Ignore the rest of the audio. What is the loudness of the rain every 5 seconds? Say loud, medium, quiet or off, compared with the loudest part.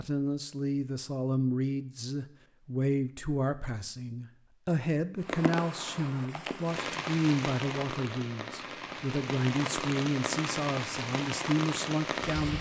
off, loud, loud.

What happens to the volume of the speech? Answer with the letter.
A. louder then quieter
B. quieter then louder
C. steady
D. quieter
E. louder
C.